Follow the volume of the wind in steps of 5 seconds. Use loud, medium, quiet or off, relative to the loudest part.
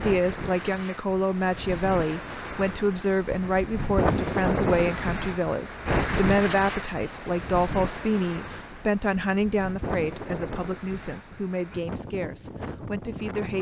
loud, loud, medium.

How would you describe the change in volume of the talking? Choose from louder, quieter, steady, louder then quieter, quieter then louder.
quieter.